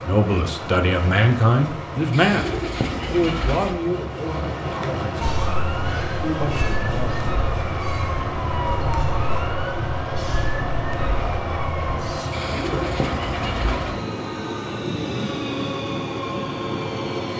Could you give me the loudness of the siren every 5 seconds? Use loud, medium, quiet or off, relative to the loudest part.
off, loud, loud, off.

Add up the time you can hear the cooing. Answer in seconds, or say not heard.
3 s.